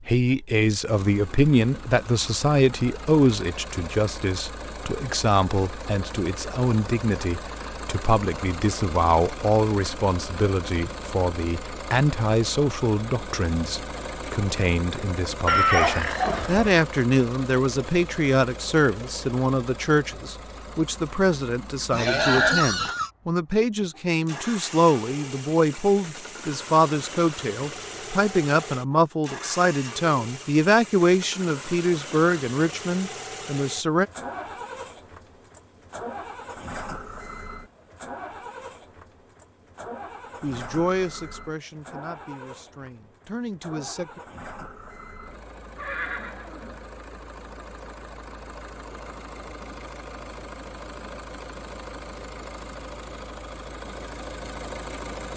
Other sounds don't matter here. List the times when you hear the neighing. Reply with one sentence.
You can hear the neighing from 15.4 to 16.8 s, from 21.9 to 23.1 s and from 45.8 to 46.9 s.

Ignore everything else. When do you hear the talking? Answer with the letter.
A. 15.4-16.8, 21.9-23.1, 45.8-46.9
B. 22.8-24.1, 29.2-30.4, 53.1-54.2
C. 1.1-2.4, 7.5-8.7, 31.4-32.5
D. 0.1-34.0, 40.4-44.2
D.